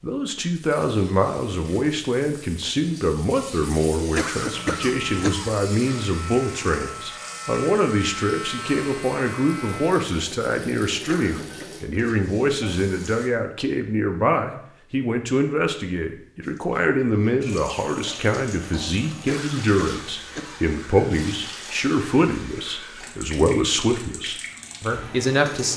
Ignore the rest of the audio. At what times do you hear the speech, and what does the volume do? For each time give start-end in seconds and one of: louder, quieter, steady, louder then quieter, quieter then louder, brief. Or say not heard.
0.0-25.7 steady.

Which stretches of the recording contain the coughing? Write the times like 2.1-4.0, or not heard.
4.2-5.5, 11.1-11.7, 19.2-20.6.